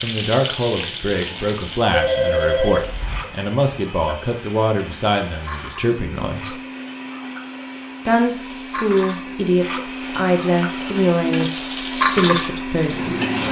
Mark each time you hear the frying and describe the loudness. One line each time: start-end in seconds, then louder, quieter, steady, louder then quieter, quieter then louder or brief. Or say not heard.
0.0-13.4 quieter then louder.